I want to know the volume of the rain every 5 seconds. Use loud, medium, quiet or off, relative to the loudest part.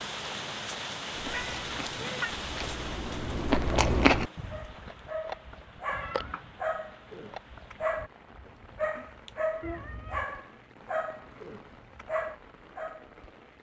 loud, quiet, quiet.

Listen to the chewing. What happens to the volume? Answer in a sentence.
The volume of the chewing goes up, then down.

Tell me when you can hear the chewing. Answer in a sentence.
The chewing can be heard from 1.1 to 8.1 s.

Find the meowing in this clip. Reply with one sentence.
The meowing can be heard from 1.2 to 2.3 s, from 5.9 to 6.5 s and from 9.6 to 10.4 s.